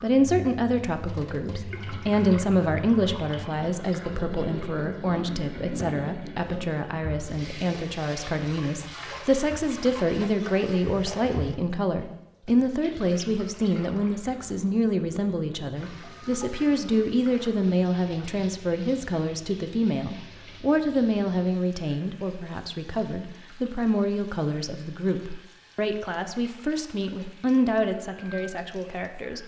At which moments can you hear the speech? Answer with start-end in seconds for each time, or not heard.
0.0-29.4.